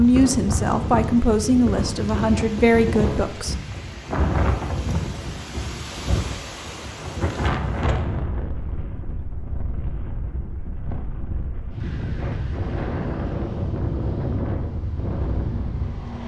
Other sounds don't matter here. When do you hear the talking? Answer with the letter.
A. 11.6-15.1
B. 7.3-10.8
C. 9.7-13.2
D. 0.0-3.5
D.